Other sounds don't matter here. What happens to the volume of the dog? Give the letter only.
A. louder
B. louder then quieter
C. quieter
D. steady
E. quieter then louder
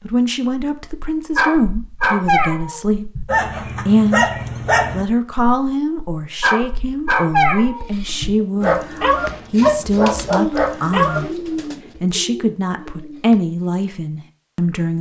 D.